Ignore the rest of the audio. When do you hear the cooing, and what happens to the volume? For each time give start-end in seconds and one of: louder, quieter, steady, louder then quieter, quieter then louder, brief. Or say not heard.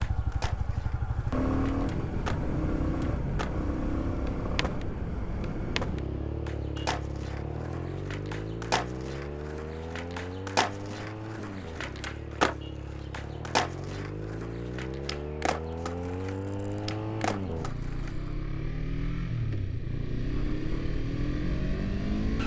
not heard.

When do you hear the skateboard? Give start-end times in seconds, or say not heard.
0.0-18.1.